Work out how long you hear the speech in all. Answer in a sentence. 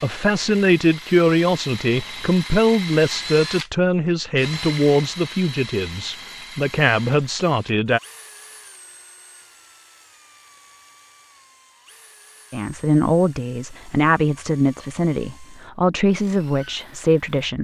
The speech can be heard for 13 seconds in total.